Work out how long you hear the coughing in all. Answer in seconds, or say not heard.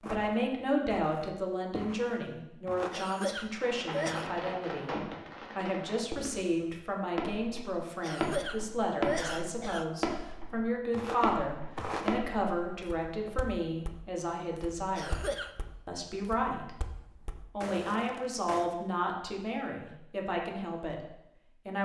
4 s.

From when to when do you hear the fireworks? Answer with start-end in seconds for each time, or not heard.
3.5-13.3.